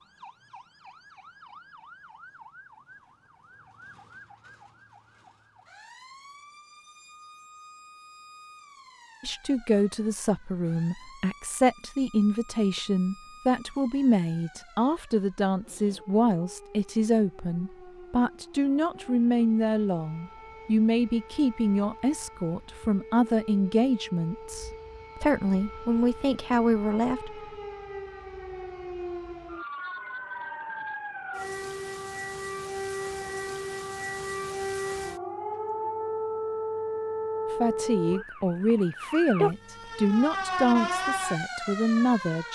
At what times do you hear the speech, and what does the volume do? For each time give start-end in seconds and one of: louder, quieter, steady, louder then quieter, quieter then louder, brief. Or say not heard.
9.2-27.4 steady
37.5-42.4 steady.